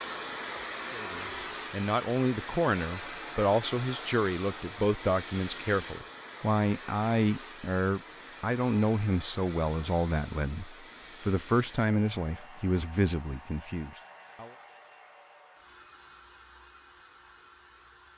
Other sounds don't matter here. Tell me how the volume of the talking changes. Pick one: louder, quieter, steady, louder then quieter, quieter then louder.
steady.